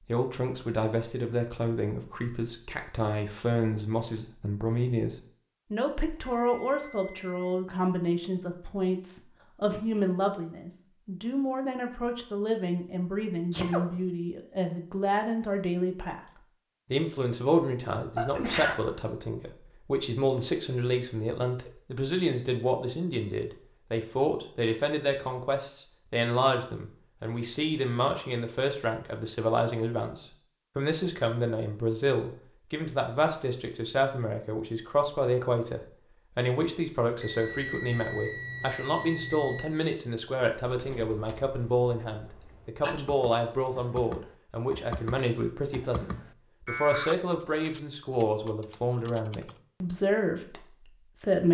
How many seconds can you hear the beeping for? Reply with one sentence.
You can hear the beeping for 4 seconds altogether.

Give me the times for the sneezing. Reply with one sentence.
The sneezing can be heard from 13.5 to 14.0 s, from 18.1 to 18.8 s and from 42.4 to 43.0 s.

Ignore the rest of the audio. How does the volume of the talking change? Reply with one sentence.
The loudness of the talking stays about the same.